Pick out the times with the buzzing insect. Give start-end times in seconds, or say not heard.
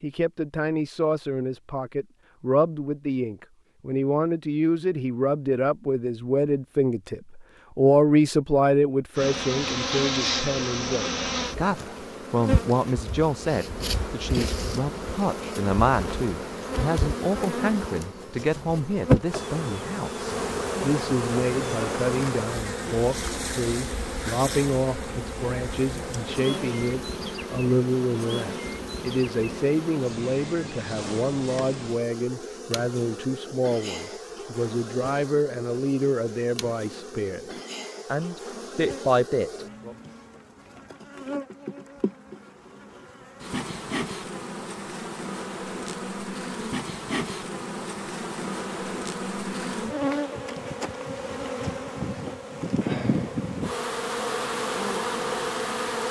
9.2-56.0.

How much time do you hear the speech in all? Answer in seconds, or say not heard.
39 s.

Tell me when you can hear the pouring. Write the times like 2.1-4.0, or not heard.
not heard.